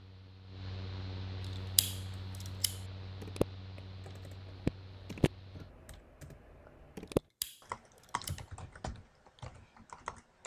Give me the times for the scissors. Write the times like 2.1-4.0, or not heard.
1.8-2.8, 7.4-8.4.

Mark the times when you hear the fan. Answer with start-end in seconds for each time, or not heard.
0.0-5.8.